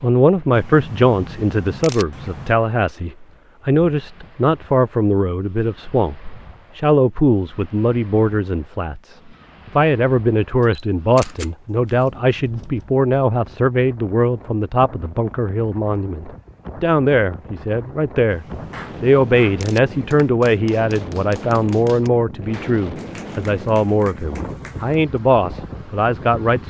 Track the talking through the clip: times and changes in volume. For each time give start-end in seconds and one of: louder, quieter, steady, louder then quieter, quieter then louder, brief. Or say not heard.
0.0-26.6 steady.